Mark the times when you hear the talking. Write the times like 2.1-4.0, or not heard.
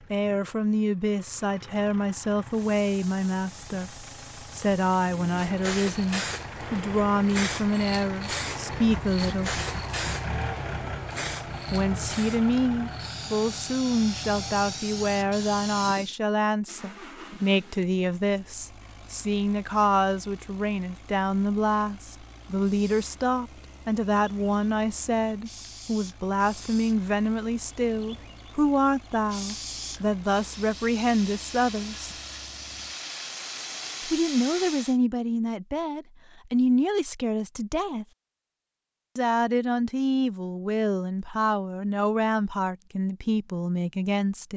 0.1-9.6, 11.7-32.1, 34.0-38.0, 39.1-44.5.